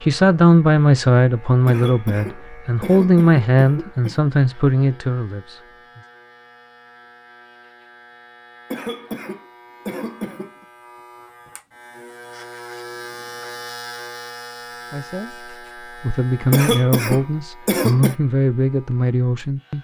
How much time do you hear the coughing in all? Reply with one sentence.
You can hear the coughing for 6 seconds altogether.